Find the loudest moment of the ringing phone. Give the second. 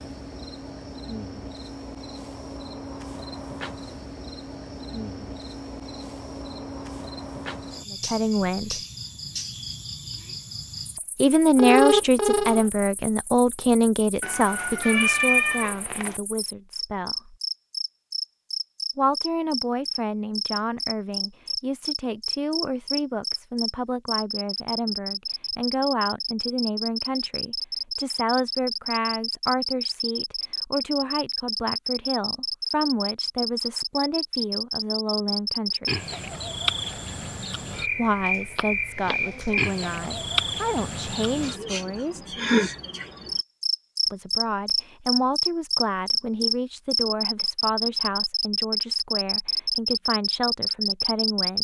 12 s.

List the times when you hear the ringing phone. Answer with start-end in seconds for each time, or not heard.
11.6-12.7, 38.5-39.1.